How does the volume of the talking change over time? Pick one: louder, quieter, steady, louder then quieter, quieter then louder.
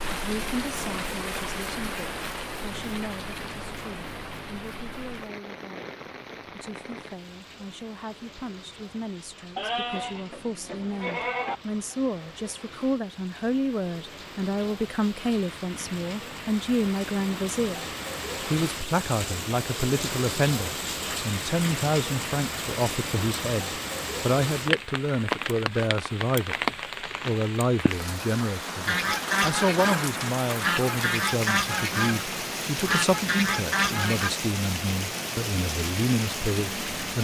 louder.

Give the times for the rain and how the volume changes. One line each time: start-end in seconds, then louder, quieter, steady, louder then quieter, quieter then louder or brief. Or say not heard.
0.0-37.1 quieter then louder.